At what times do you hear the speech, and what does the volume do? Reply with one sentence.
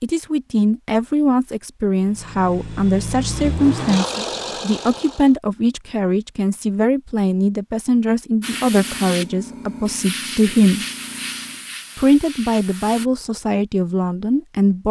The speech can be heard from 0.0 to 10.8 s, at a steady volume; and briefly from 11.9 to 14.8 s.